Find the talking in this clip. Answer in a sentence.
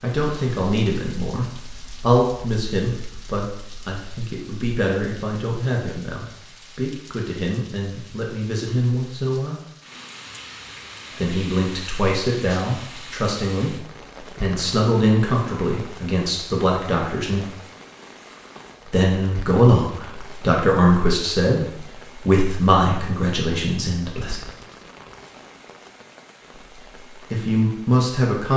You can hear the talking from 0.0 to 9.6 s, from 11.2 to 17.5 s, from 18.9 to 24.4 s and from 27.3 to 28.5 s.